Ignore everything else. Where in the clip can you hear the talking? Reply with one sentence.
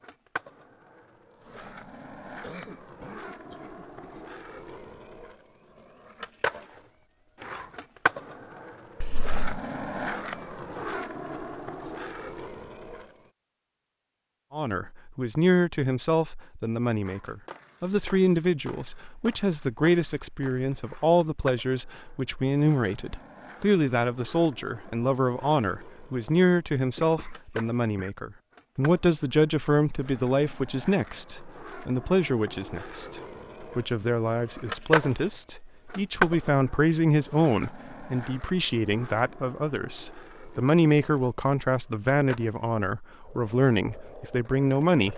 The talking can be heard from 14.5 to 45.1 s.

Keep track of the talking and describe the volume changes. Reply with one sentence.
The volume of the talking stays about the same.